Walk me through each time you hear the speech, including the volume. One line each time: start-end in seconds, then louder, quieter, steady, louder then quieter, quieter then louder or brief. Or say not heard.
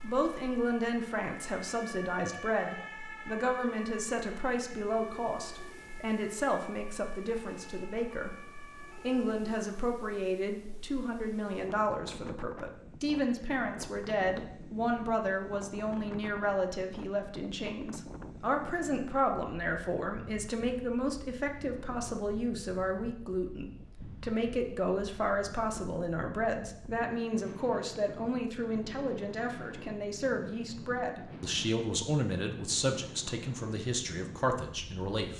0.0-35.3 steady.